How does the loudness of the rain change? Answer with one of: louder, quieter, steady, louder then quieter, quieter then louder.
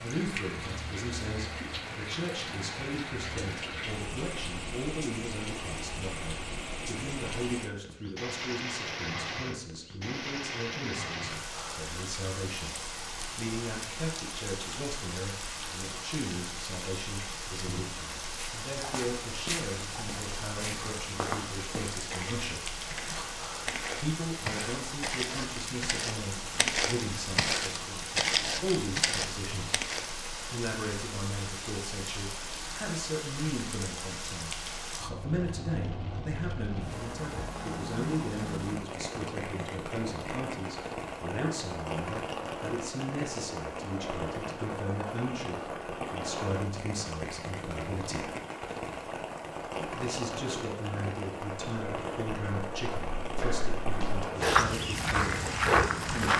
steady.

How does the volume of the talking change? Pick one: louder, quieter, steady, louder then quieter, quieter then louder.
steady.